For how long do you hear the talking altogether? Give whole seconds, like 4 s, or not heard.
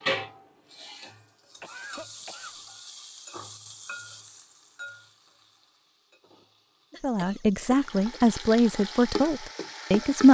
3 s.